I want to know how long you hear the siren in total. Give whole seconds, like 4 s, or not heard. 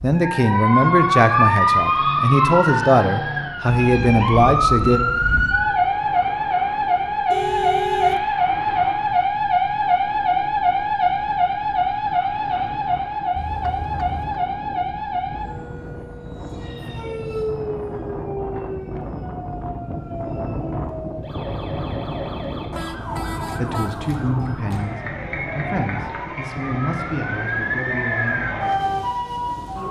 30 s.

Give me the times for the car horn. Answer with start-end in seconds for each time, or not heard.
7.3-8.2, 13.3-14.4, 22.7-24.1.